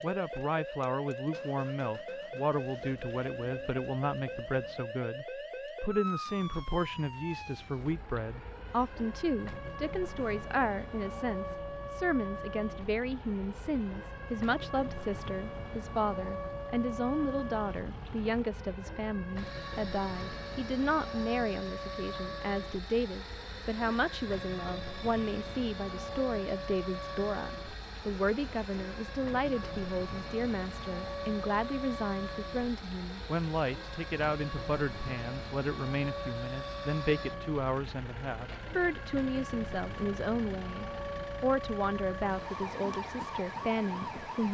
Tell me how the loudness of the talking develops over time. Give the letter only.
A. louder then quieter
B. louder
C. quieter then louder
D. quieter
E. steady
E.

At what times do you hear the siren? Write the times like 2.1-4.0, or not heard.
0.0-44.4.